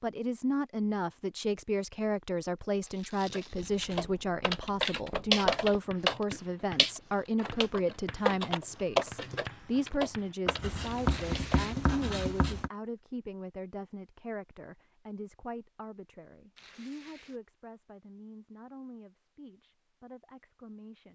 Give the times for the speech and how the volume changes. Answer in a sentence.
You can hear the speech from 0.0 to 21.1 s, getting quieter.